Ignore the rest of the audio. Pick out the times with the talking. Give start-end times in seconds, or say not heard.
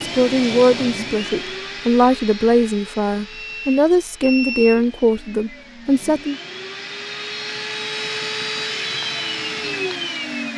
0.0-6.3.